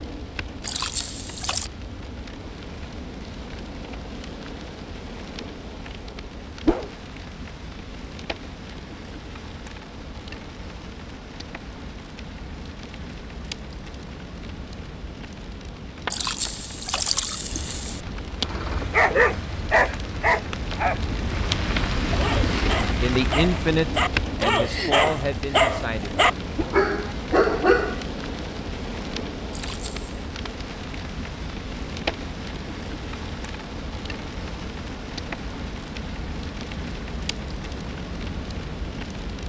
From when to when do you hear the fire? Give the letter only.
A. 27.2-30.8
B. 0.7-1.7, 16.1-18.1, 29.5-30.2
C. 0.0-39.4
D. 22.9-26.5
C.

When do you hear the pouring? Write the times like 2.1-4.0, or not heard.
0.7-1.7, 16.1-18.1, 29.5-30.2.